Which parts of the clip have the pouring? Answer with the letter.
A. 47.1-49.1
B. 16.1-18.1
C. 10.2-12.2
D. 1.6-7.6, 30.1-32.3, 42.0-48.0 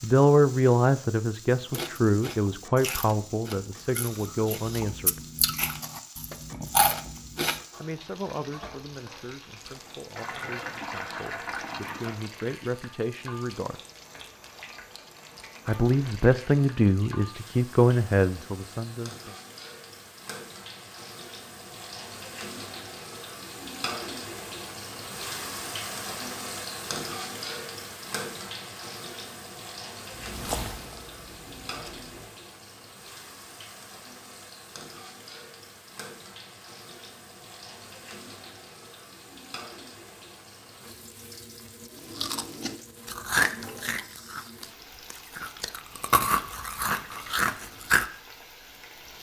C.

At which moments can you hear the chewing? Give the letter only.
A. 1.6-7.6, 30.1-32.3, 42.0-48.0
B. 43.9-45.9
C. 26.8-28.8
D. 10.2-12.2
A.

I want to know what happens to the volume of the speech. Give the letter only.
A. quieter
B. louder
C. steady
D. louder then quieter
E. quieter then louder
E.